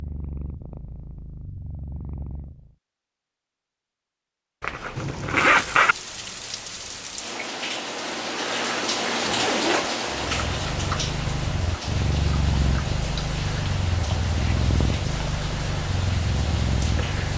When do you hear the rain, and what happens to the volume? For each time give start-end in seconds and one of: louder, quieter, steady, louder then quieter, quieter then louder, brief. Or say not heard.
5.0-17.3 louder then quieter.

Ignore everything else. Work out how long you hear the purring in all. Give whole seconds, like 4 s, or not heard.
10 s.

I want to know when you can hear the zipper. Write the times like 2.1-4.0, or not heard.
4.6-6.0, 9.2-9.9.